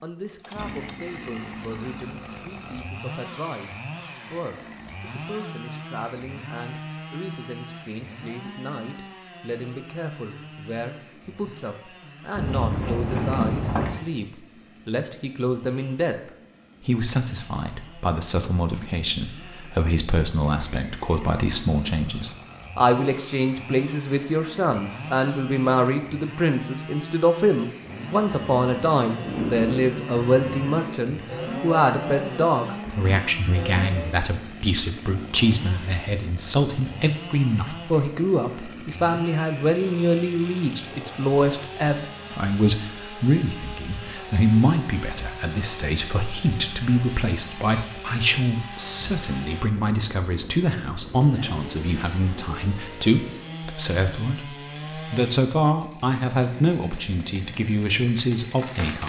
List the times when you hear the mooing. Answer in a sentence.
You can hear the mooing from 27.8 to 34.2 s.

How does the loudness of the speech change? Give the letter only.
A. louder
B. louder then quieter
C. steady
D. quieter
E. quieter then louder
A.